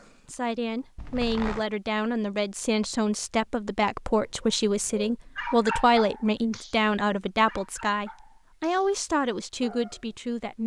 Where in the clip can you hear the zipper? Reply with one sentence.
You can hear the zipper from 0.9 to 1.6 s.